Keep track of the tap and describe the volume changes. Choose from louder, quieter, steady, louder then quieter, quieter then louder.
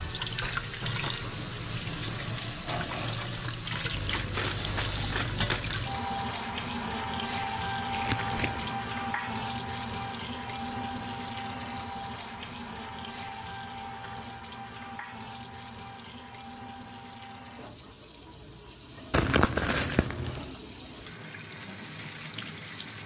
quieter.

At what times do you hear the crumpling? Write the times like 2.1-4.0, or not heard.
3.9-5.9, 7.9-8.8, 19.1-20.4.